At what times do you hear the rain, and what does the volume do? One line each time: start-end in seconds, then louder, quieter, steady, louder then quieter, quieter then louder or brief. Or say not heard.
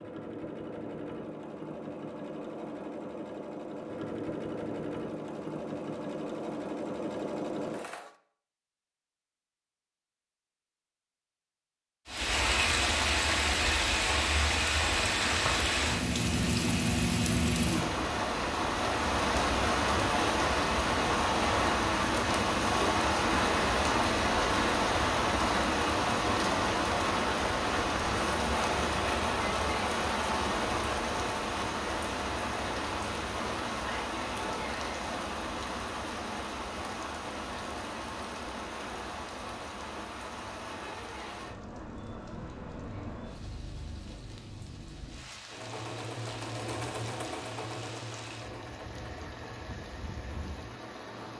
12.1-51.3 quieter.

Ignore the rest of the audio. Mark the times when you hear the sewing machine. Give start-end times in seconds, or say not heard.
0.0-8.2, 45.5-51.3.